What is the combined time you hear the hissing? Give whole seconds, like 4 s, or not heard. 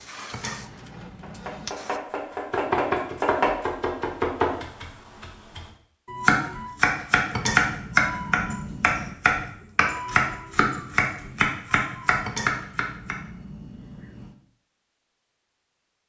2 s.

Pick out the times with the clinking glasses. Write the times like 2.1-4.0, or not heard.
0.3-1.7, 7.3-9.2, 12.2-14.3.